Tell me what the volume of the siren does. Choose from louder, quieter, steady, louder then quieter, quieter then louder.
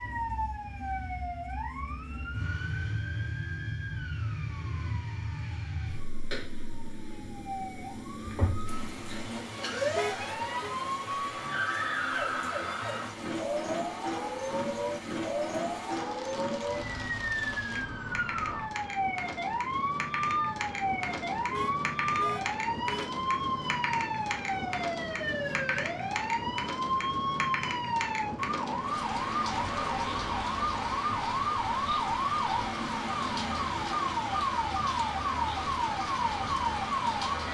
louder.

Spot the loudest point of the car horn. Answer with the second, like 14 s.
10 s.